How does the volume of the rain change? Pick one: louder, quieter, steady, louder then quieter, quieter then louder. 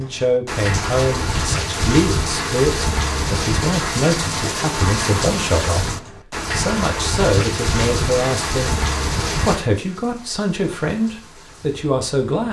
quieter.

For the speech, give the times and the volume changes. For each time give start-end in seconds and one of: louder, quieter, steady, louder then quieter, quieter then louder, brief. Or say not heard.
0.0-8.8 steady
9.4-12.4 brief.